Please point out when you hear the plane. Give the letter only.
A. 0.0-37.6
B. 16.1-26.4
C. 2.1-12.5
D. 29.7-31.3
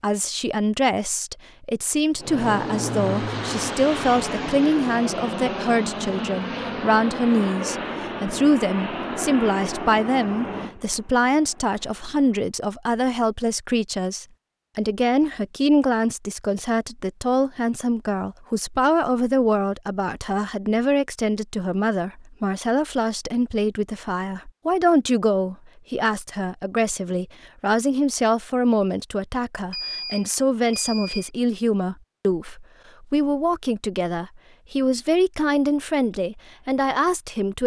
C.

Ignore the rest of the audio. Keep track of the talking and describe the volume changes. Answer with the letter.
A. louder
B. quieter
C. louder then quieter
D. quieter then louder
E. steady
E.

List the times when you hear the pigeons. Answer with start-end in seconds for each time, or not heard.
not heard.